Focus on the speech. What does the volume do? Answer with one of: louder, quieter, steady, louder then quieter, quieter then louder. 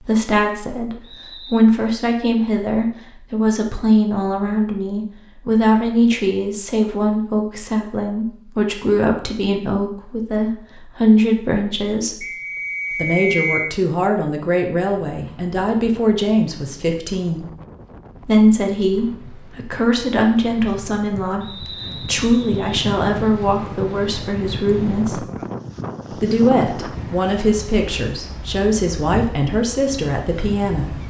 steady.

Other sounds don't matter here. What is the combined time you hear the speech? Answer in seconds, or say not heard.
29 s.